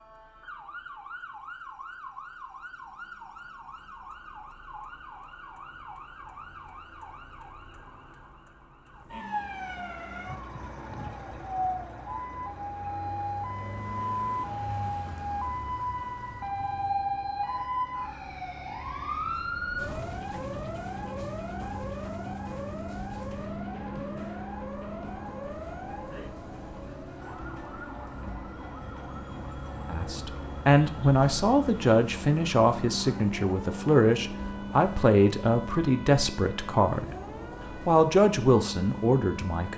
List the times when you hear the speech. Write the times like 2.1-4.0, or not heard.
29.9-37.1, 37.9-39.7.